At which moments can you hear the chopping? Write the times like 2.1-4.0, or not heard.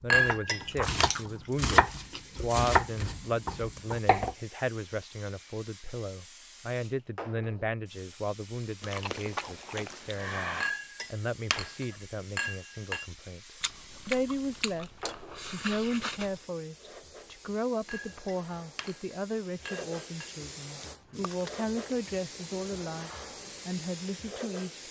0.0-4.3.